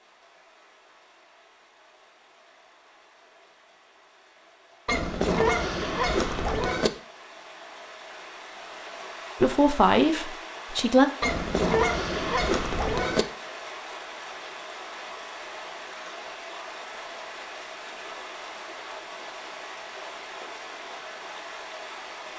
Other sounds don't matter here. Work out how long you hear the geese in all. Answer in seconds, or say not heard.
4 s.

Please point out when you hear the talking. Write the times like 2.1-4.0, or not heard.
9.4-11.1.